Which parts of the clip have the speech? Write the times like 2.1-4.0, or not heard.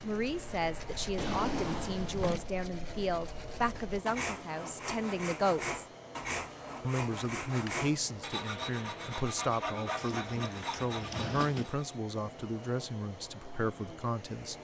0.0-5.8, 6.8-14.5.